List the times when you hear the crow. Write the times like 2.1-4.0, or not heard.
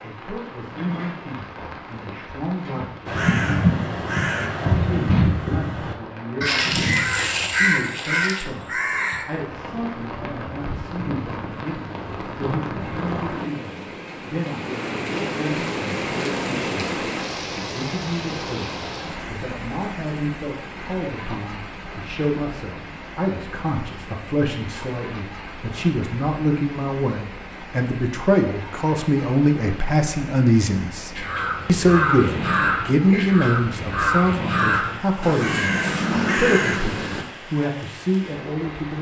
3.0-9.2, 31.1-37.2.